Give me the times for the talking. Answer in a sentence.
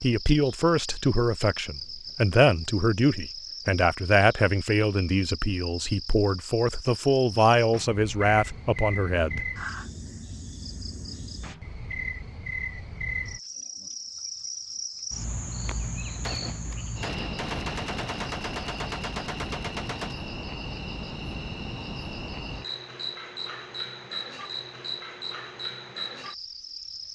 You can hear the talking from 0.0 to 9.5 s.